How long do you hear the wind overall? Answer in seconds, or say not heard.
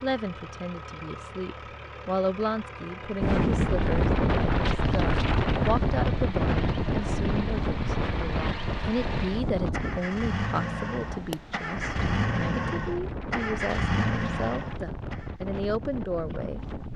14 s.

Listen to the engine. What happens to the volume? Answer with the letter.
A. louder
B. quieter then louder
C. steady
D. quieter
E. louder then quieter
A.